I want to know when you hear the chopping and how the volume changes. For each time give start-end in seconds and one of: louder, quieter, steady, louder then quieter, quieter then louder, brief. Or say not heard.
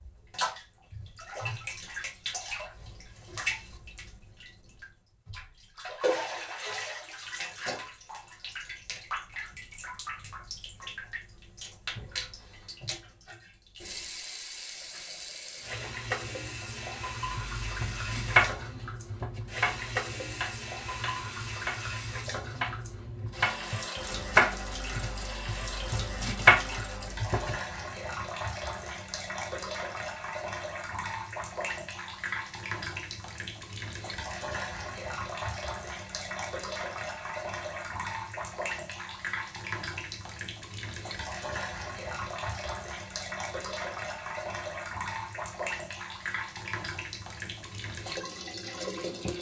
17.3-27.6 quieter then louder.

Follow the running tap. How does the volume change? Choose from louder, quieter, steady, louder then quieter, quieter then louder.
steady.